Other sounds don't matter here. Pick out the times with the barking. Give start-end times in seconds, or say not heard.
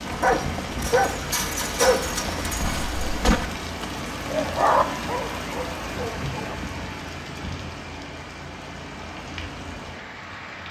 0.1-6.6.